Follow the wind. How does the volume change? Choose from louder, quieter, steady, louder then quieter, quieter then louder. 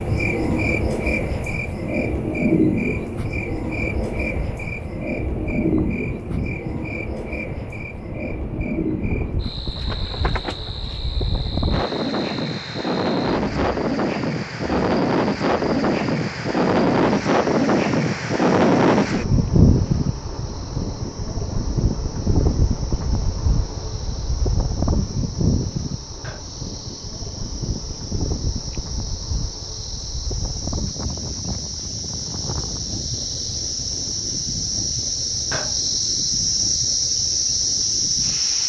louder then quieter.